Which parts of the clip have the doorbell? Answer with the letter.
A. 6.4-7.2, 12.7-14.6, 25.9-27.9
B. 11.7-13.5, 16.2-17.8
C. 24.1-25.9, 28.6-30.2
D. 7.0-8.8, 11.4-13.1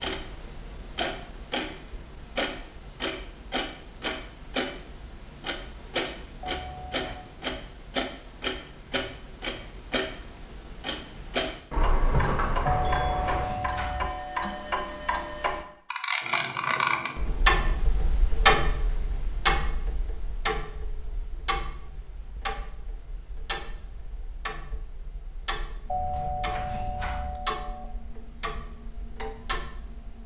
A.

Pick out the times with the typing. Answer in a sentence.
You can hear the typing from 11.7 to 13.5 s and from 16.2 to 17.8 s.